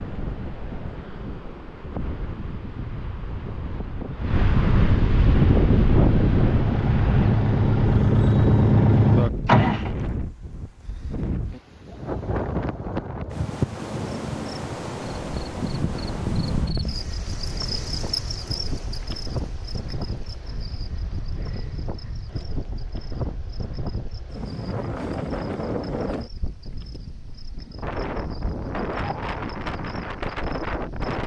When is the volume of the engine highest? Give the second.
9 s.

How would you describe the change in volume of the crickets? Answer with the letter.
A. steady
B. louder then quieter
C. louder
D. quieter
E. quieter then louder
D.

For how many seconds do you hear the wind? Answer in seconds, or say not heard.
31 s.